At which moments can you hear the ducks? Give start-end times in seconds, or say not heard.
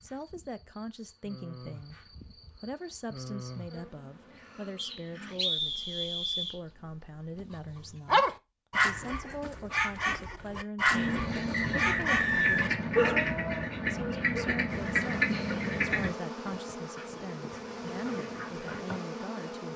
10.9-19.0.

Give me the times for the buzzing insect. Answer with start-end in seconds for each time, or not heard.
0.0-8.0, 14.7-19.7.